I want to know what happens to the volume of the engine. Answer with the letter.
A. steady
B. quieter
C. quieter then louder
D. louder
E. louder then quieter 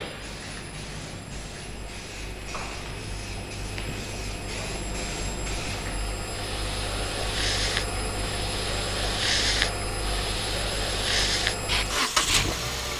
D.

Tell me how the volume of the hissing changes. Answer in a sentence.
The loudness of the hissing goes up.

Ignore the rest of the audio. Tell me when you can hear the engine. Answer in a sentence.
The engine can be heard from 0.0 to 12.9 s.